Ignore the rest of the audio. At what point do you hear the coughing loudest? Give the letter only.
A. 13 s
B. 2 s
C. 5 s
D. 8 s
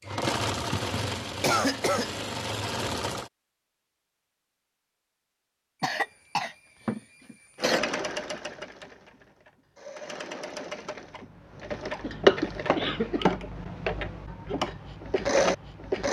B.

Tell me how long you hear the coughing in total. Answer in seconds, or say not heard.
5 s.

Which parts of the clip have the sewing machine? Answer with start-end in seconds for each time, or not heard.
0.0-3.3, 7.5-16.0.